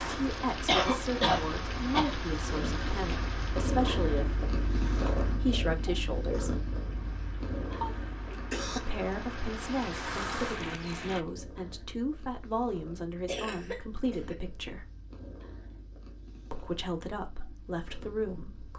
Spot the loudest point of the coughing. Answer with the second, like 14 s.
1 s.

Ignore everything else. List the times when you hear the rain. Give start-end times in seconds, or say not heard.
0.0-11.2.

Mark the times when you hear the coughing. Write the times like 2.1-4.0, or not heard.
0.7-2.1, 7.8-8.8, 13.2-14.3.